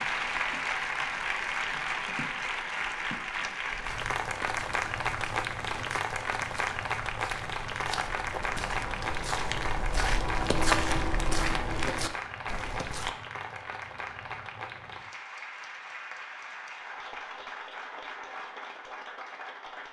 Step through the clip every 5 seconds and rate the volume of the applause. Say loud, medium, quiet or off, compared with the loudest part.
loud, loud, medium, medium.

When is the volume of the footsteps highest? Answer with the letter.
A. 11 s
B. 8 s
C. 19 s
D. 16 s
A.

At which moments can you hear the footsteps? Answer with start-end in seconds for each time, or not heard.
3.7-13.2.